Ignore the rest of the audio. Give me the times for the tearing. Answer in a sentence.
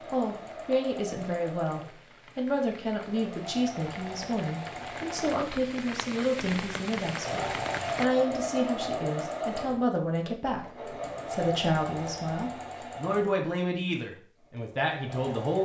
You can't hear the tearing here.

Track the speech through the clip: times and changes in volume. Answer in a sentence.
You can hear the speech from 0.1 to 15.6 s, at a steady volume.